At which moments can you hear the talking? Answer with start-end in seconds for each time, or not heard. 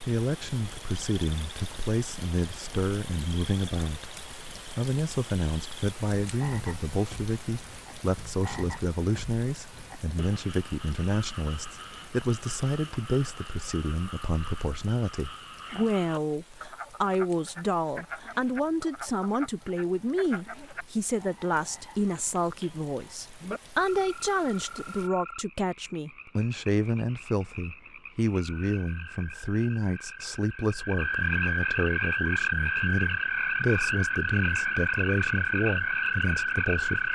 0.0-37.0.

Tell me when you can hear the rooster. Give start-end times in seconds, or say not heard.
not heard.